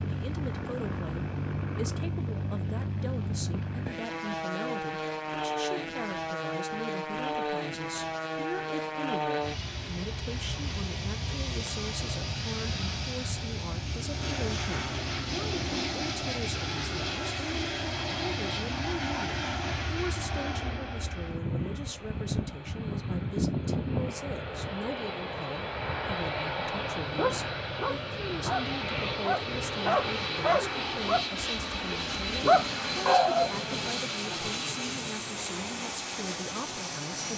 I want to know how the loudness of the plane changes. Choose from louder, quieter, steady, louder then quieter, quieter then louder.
steady.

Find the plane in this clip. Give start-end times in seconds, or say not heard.
0.0-37.3.